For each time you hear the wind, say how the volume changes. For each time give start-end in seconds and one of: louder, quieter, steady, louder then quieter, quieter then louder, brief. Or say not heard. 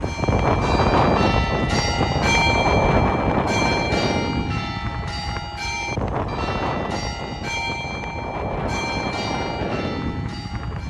0.0-10.8 quieter.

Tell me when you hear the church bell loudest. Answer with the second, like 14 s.
2 s.